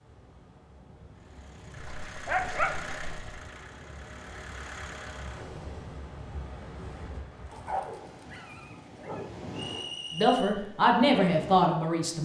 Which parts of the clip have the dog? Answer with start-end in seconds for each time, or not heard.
1.8-3.3, 7.5-9.4.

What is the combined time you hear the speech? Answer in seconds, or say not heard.
2 s.